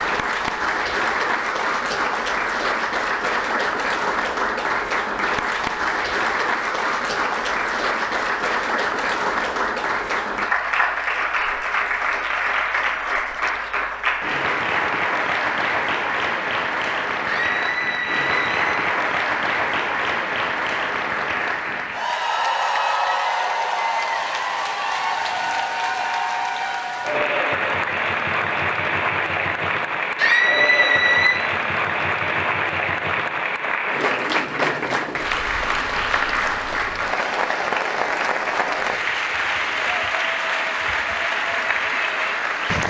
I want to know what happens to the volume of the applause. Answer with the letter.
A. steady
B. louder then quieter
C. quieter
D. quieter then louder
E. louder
A.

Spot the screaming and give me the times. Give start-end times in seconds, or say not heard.
17.2-18.8, 30.1-31.4.